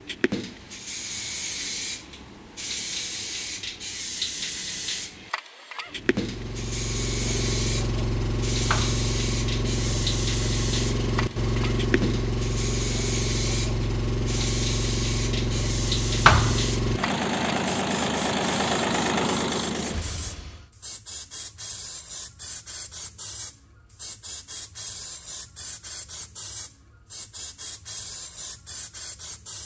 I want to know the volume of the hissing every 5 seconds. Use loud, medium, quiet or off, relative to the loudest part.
loud, loud, loud, loud, medium, medium.